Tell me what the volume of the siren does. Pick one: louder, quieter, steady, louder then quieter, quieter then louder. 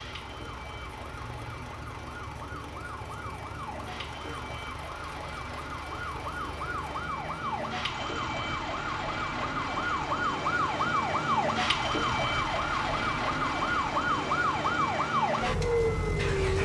louder.